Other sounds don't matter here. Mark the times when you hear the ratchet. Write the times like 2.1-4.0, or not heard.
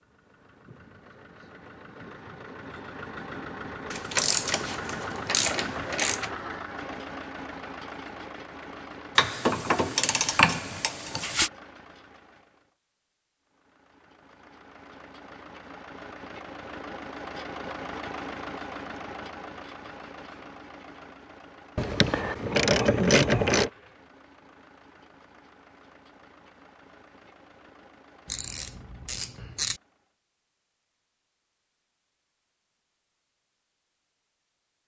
3.9-6.3, 9.2-11.5, 21.8-23.7, 28.3-29.8.